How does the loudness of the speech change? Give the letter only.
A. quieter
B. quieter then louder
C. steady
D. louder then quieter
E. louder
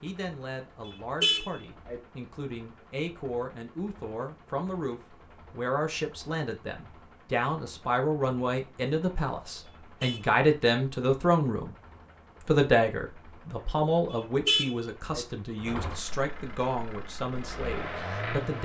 D.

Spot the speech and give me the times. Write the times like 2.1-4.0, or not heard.
0.0-11.8, 12.4-18.5.